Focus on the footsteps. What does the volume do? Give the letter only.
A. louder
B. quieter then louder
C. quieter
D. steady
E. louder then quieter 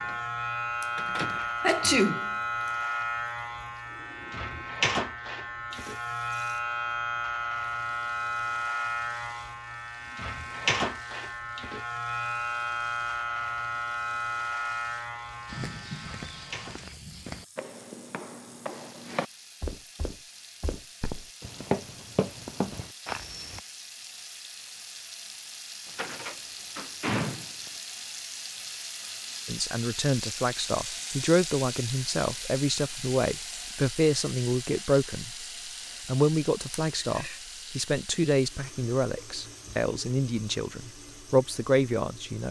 A.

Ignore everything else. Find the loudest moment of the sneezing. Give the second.
2 s.